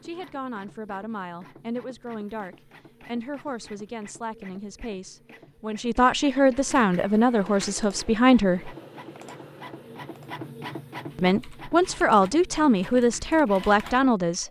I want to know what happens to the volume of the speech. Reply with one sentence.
The volume of the speech goes up.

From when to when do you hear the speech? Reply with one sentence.
The speech can be heard from 0.0 to 8.7 s and from 11.2 to 14.4 s.